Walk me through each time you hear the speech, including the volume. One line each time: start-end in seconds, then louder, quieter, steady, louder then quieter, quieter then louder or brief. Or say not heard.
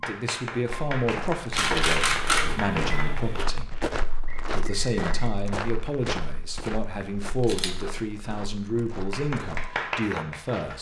0.0-10.7 steady.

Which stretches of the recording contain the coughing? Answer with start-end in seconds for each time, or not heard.
not heard.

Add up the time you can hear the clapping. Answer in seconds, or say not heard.
5 s.